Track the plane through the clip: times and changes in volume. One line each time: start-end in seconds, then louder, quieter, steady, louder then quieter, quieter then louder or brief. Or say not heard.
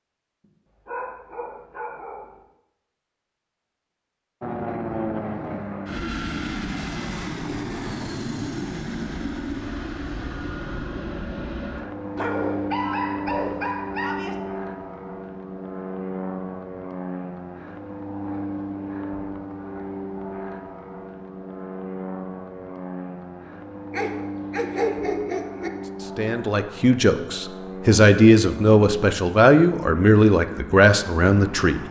4.4-31.8 quieter.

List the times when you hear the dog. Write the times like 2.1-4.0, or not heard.
0.8-2.4, 12.2-14.3, 23.9-25.7.